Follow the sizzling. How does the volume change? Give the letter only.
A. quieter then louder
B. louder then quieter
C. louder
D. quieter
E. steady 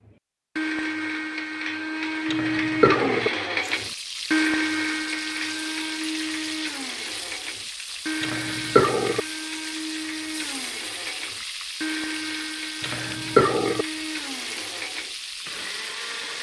E.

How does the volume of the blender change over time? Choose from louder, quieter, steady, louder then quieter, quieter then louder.
quieter.